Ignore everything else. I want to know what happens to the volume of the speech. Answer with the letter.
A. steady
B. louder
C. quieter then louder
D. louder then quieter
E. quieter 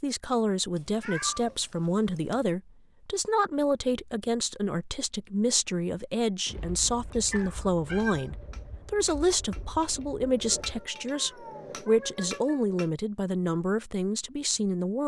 A.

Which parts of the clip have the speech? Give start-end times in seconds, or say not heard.
0.0-15.0.